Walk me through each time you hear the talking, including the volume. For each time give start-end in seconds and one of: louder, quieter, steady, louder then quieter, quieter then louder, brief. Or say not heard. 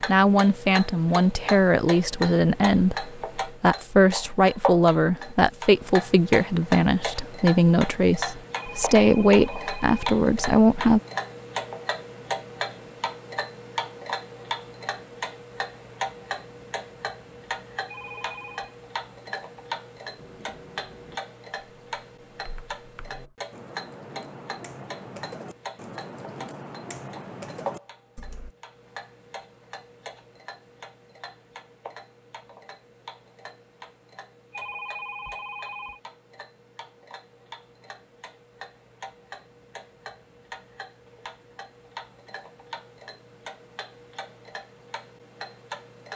0.1-11.0 steady.